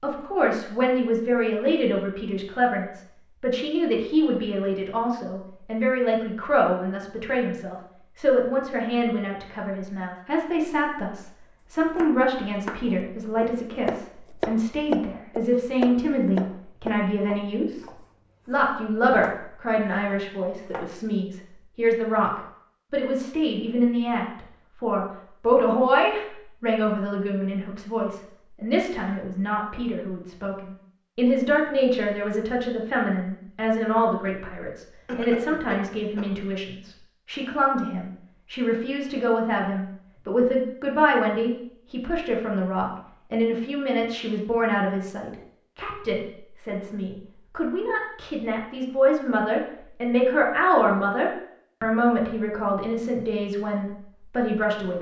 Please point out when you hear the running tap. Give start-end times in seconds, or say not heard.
not heard.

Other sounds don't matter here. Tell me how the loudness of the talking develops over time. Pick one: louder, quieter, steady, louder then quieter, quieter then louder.
steady.